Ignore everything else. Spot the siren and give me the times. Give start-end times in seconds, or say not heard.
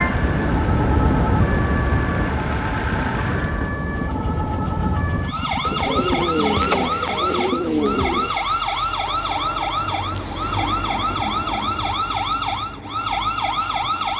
0.0-14.1.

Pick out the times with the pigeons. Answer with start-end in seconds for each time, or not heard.
5.7-8.4.